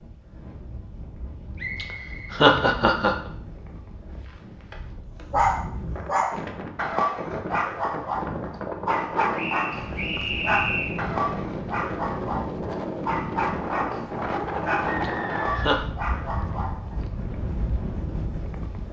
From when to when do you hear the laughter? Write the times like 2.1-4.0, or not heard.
1.8-3.1, 15.0-15.8.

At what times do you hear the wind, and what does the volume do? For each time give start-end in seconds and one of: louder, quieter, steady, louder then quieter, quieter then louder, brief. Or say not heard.
0.0-18.8 louder.